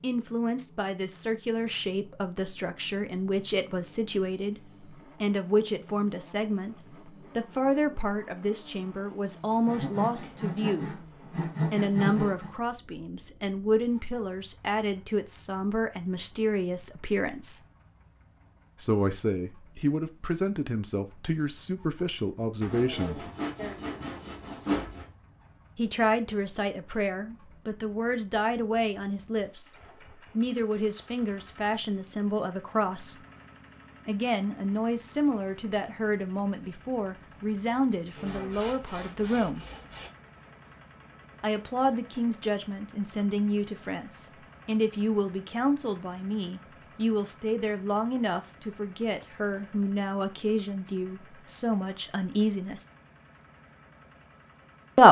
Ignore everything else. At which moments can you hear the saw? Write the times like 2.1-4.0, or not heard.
9.7-12.5, 22.6-25.1, 38.1-40.1.